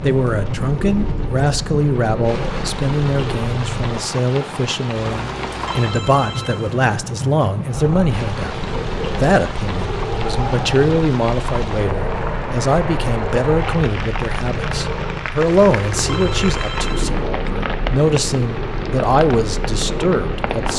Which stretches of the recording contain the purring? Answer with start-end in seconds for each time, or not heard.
0.1-3.9, 7.7-20.7.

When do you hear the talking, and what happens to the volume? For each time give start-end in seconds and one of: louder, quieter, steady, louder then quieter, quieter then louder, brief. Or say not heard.
0.0-20.7 steady.